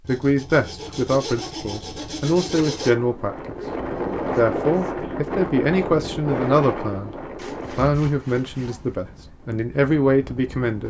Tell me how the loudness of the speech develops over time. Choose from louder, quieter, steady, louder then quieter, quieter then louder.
steady.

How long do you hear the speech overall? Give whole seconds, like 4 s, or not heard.
10 s.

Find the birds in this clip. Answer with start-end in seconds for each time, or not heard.
not heard.